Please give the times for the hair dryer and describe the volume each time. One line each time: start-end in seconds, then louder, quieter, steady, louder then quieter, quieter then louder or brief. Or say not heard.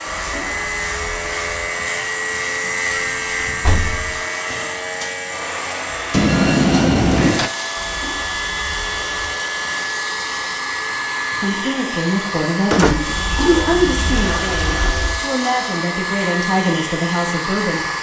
0.0-17.9 louder.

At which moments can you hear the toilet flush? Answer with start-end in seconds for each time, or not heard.
0.1-1.7, 7.8-9.3, 13.1-15.2.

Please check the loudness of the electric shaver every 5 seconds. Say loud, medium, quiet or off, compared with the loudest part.
loud, medium, medium, medium.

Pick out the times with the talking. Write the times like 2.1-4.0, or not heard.
11.4-17.9.